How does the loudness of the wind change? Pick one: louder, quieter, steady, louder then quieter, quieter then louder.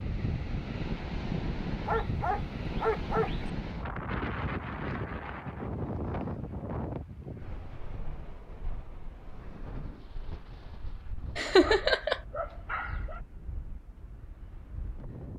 quieter.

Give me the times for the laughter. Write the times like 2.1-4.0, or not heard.
11.3-12.2.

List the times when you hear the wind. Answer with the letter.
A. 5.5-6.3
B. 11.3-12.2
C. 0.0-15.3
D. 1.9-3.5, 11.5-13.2
C.